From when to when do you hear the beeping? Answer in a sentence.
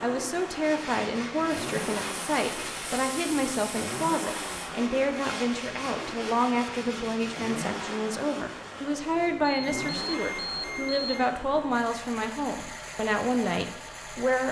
The beeping can be heard from 9.7 to 11.2 s.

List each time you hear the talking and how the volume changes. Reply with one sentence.
You can hear the talking from 0.0 to 14.4 s, at a steady volume.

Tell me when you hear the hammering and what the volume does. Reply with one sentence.
The hammering can't be heard in this clip.